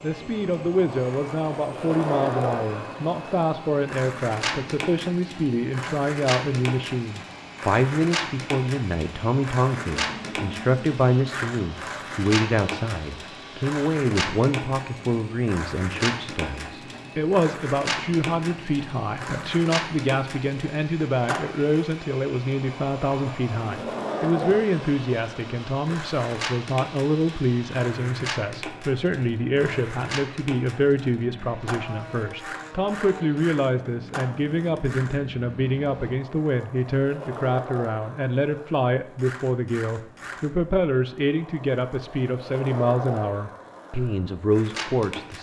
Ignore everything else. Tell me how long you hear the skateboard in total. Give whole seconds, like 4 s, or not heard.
45 s.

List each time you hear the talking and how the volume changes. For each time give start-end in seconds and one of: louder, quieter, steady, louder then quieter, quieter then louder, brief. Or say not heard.
0.0-45.3 steady.